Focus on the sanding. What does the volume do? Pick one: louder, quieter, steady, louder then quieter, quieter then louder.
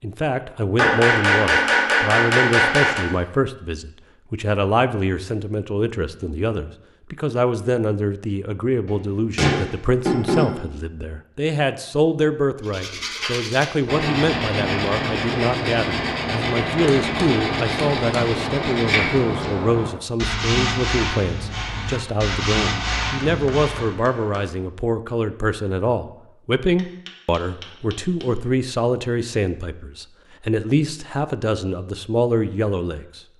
steady.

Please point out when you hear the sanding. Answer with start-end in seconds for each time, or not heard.
12.6-23.9.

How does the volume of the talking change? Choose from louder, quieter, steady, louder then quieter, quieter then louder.
steady.